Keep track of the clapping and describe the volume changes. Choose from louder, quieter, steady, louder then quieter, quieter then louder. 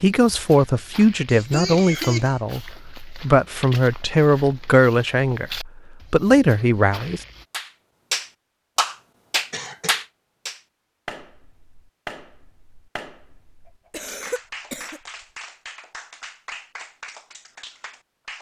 quieter.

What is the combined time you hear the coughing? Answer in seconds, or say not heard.
3 s.